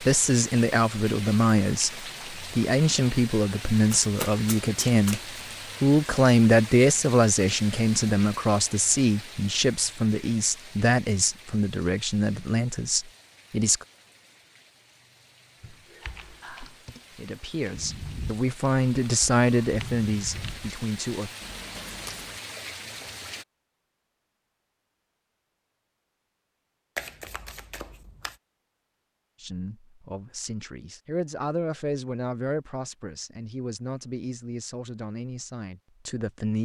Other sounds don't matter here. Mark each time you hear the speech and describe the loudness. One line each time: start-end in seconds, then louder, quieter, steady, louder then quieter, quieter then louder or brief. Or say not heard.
0.0-5.2 steady
5.8-13.8 quieter
17.1-21.3 louder then quieter
29.4-36.6 louder then quieter.